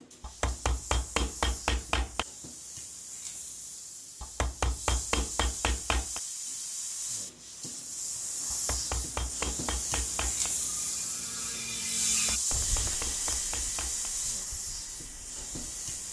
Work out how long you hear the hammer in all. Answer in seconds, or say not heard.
8 s.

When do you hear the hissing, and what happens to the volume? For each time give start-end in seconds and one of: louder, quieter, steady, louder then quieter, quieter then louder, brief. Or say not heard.
0.0-16.0 louder.